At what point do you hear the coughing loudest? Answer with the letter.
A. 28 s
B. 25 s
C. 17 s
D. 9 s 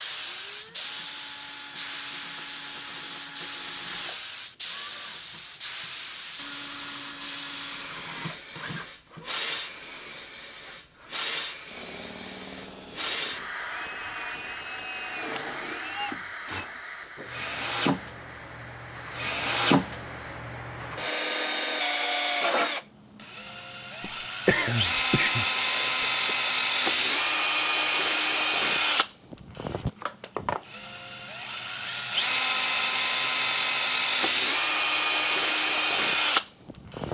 B.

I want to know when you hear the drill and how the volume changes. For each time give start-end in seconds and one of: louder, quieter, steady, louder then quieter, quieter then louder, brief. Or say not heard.
0.2-37.0 louder.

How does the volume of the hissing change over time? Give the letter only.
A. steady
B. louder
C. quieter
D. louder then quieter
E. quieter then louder
C.